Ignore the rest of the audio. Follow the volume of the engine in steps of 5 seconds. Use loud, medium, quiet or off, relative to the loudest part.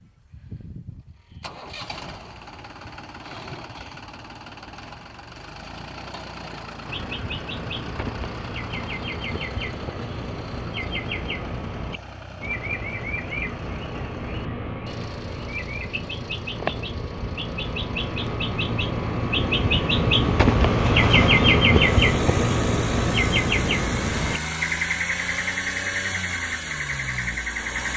medium, medium, medium, medium, loud, loud.